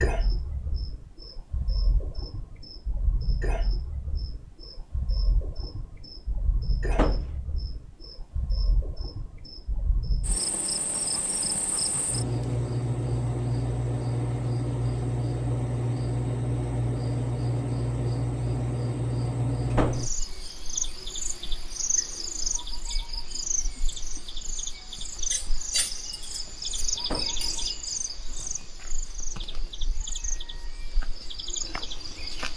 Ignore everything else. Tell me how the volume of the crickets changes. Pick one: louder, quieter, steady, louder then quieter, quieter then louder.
louder then quieter.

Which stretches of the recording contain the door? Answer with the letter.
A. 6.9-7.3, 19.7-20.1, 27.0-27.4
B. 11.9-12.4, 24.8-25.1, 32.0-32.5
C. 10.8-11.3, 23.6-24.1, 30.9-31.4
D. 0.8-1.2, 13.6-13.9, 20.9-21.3
A.